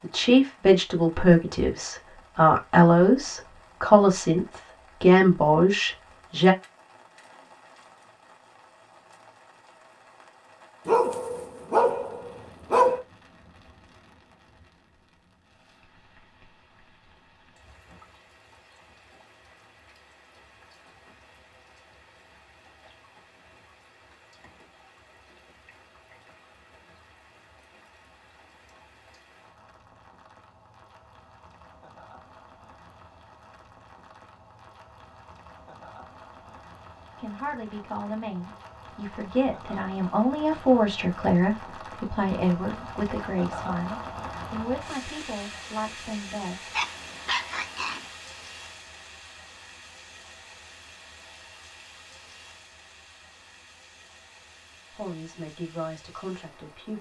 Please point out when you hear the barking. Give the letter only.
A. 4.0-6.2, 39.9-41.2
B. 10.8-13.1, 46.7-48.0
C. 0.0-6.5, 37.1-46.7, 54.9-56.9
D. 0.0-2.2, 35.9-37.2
B.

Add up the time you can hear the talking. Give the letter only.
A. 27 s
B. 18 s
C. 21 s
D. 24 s
B.